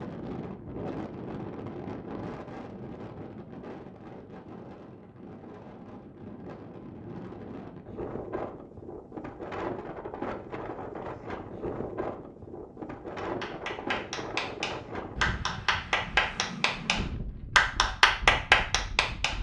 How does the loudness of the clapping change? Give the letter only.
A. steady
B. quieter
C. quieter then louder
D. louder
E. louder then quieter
D.